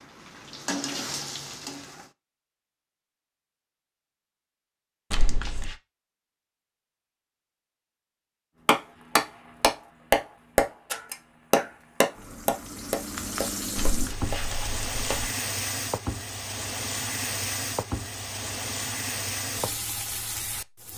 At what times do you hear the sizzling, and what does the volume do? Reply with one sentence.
You can hear the sizzling briefly from 0.0 to 2.1 s; and from 8.8 to 20.9 s, getting louder.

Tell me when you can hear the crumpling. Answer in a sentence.
You can hear the crumpling from 5.1 to 5.7 s and from 13.8 to 15.1 s.